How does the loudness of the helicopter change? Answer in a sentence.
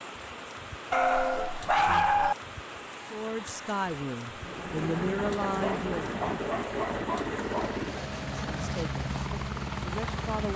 The loudness of the helicopter stays about the same.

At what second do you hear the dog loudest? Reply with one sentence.
The loudest moment of the dog is at 2 seconds.